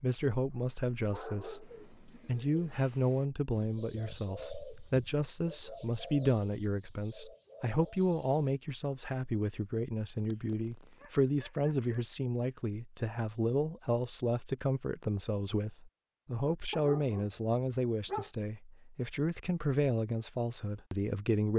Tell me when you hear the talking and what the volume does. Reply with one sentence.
The talking can be heard from 0.0 to 21.5 s, at a steady volume.